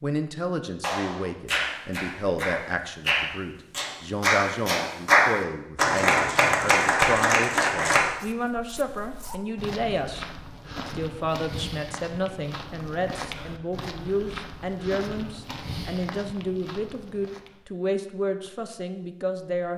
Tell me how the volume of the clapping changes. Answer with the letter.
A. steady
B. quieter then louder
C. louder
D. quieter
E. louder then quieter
C.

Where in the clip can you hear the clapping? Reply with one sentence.
You can hear the clapping from 0.8 to 8.1 s.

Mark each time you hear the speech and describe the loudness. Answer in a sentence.
You can hear the speech from 0.0 to 10.2 s, at a steady volume; and from 10.8 to 19.7 s, at a steady volume.